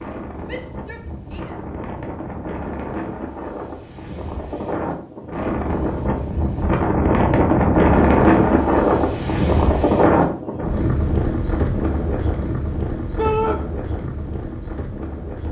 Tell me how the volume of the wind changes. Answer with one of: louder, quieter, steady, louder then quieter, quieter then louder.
louder then quieter.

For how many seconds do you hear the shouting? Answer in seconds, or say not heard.
2 s.